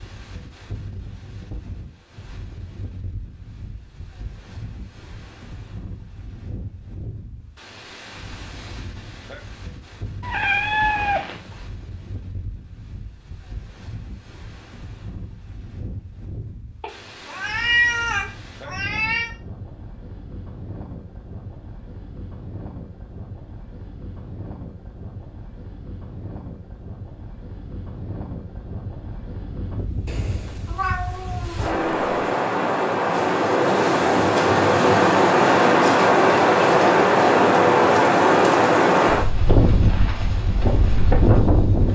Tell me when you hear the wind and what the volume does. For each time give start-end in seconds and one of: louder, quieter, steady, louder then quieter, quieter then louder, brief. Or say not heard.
0.0-41.9 louder.